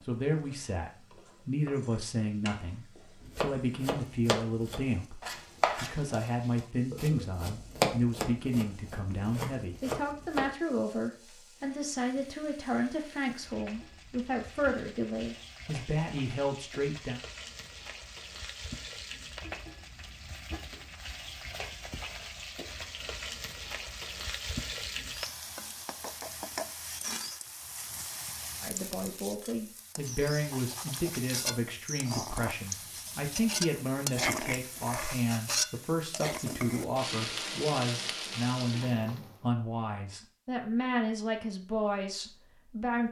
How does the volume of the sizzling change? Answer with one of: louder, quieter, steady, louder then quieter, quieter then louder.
louder.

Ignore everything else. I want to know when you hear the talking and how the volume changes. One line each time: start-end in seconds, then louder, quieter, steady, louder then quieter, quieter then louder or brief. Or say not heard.
0.0-17.2 steady
28.6-43.0 steady.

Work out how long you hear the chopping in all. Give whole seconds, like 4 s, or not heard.
7 s.